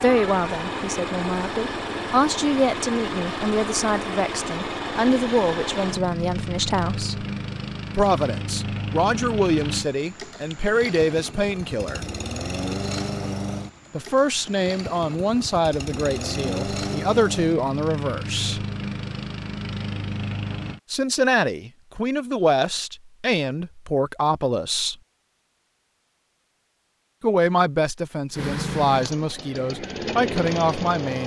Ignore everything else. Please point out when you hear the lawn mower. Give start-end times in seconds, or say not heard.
0.0-20.8, 28.4-31.2.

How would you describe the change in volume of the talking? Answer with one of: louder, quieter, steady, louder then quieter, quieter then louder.
steady.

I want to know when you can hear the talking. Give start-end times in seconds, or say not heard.
0.0-7.2, 8.0-12.1, 13.9-18.6, 20.9-24.9, 27.2-31.2.